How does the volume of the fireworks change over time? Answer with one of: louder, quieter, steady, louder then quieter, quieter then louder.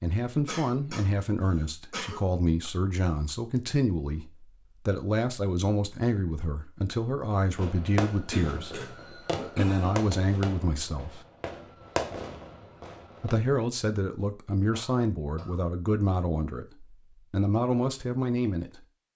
quieter then louder.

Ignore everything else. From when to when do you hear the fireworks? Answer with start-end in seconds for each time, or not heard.
7.5-13.3.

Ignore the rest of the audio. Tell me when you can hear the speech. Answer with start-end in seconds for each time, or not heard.
0.0-8.8, 9.6-11.2, 13.2-18.8.